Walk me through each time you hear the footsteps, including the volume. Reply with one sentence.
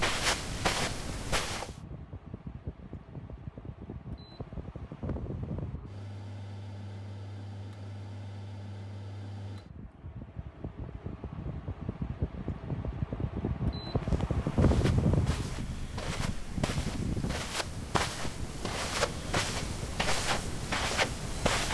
The footsteps can be heard briefly from 0.0 to 1.8 s; and from 14.0 to 21.7 s, getting louder.